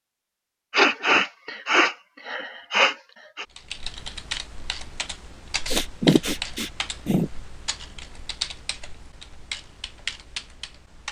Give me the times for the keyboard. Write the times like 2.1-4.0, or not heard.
3.5-11.0.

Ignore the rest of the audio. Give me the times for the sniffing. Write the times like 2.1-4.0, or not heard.
0.7-3.5, 5.7-7.3.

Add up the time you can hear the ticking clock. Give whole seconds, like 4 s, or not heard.
not heard.